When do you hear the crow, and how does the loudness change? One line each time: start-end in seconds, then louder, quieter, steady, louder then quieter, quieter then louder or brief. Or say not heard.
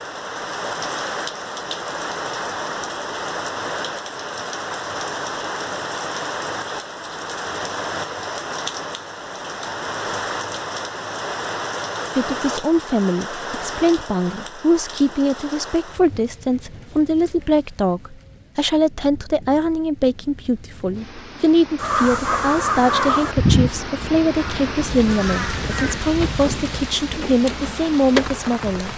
21.8-26.9 quieter then louder.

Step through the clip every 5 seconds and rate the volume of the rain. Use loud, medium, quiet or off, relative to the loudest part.
loud, loud, loud, quiet, medium, loud.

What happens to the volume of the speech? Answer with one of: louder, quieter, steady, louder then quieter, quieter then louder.
steady.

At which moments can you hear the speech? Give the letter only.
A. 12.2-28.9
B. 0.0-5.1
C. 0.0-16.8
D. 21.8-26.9
A.